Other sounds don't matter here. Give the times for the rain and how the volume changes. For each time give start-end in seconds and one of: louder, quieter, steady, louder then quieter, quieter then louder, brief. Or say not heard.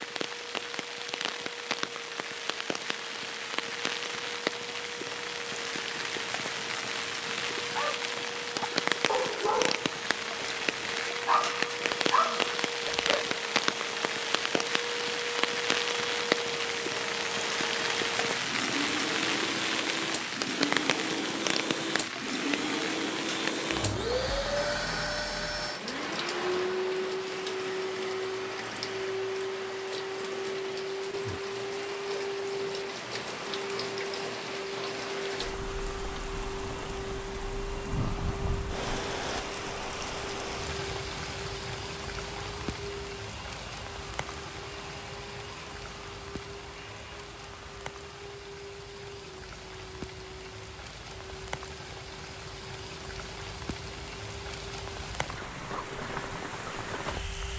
0.0-57.5 quieter.